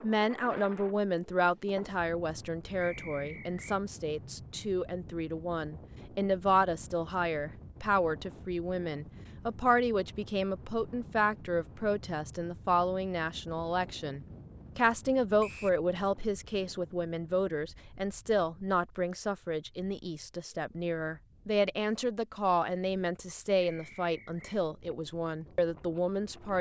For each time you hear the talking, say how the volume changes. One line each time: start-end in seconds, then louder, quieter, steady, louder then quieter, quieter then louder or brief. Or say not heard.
0.0-26.5 steady.